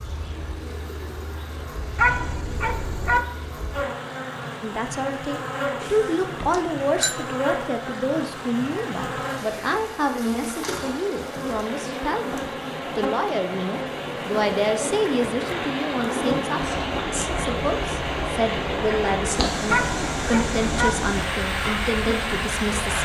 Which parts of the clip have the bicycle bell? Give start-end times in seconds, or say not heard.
5.8-7.2.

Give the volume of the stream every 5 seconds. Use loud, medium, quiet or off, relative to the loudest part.
quiet, quiet, medium, loud, loud.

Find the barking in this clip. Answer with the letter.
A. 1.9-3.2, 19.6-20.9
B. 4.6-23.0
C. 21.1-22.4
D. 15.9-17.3
A.